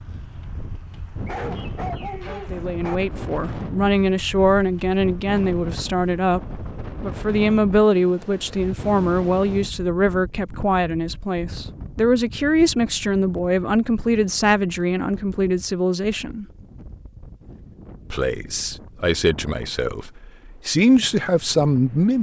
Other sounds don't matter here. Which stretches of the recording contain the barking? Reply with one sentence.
You can hear the barking from 1.2 to 3.0 s.